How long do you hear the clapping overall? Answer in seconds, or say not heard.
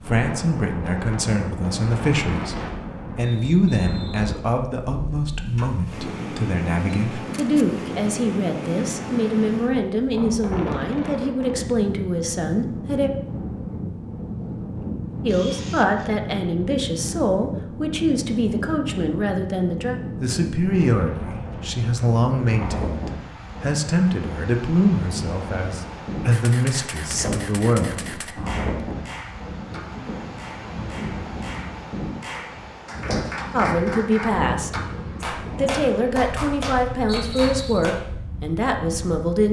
10 s.